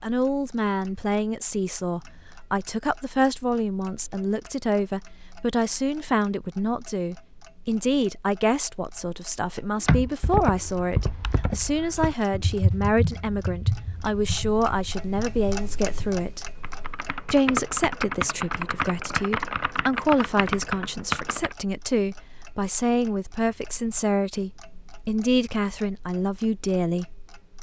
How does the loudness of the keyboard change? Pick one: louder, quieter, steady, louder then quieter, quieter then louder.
quieter then louder.